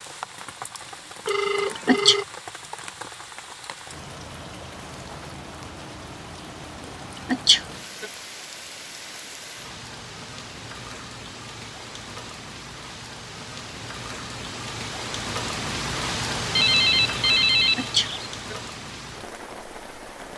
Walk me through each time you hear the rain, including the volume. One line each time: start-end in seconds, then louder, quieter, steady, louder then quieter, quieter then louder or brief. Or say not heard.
0.0-20.3 louder.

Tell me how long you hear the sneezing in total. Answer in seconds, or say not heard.
3 s.